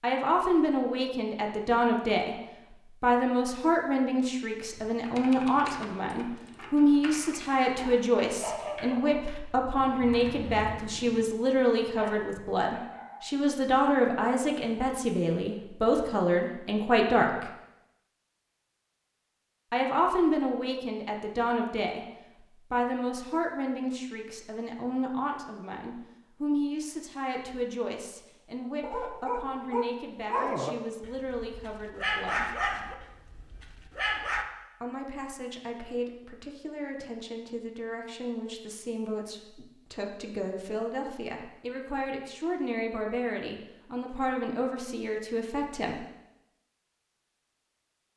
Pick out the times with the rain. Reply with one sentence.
The rain can't be heard in this clip.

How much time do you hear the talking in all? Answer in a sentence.
You can hear the talking for 41 seconds altogether.